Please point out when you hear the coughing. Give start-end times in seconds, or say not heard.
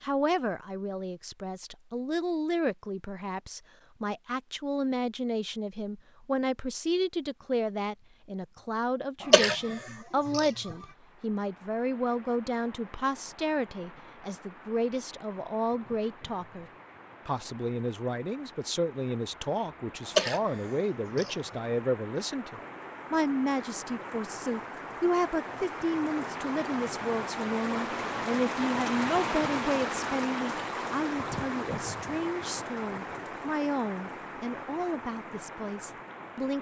9.2-10.8, 20.1-21.6.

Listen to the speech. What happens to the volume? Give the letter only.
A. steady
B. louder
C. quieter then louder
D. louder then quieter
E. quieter
A.